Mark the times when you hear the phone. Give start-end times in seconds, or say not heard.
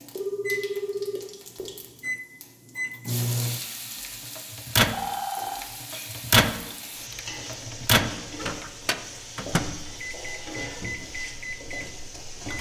0.1-1.6, 4.9-5.7, 10.1-10.9.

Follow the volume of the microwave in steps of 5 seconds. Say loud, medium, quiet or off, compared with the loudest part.
loud, loud, quiet.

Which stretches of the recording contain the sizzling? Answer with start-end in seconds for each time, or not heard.
0.0-12.5.